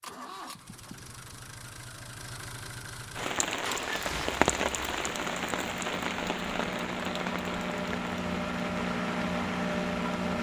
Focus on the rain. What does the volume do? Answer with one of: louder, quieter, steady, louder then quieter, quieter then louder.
quieter.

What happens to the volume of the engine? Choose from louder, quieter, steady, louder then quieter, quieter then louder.
louder.